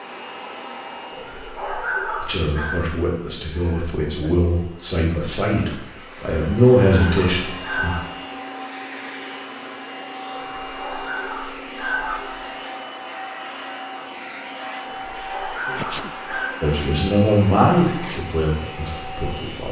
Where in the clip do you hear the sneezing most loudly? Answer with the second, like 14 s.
16 s.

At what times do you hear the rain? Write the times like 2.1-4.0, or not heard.
not heard.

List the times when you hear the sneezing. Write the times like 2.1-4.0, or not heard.
3.4-4.3, 15.7-16.1.